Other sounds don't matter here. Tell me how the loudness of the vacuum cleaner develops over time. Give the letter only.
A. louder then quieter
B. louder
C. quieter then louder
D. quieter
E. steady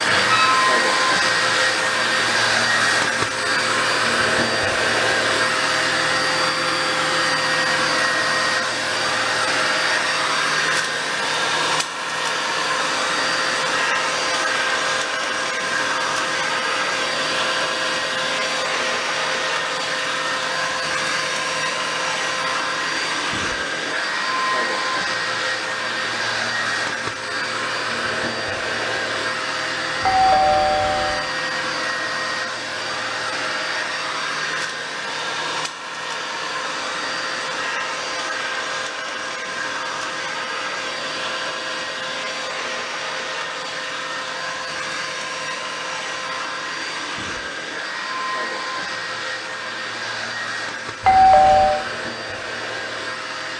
D.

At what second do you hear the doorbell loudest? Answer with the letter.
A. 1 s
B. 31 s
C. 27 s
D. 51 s
D.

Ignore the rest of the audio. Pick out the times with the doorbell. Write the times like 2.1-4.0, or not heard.
0.0-0.7, 30.0-31.2, 51.0-51.8.